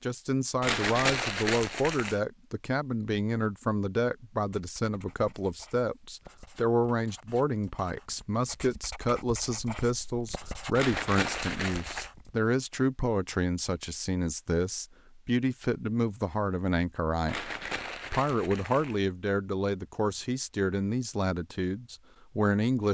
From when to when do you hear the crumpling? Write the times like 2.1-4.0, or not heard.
0.6-2.2, 10.8-12.1, 17.2-19.0.